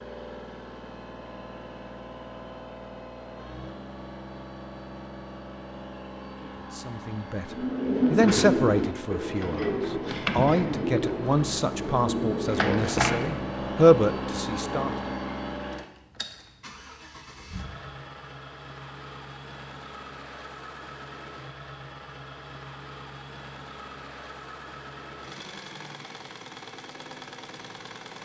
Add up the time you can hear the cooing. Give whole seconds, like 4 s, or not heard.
8 s.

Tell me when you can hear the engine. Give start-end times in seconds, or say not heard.
0.0-28.2.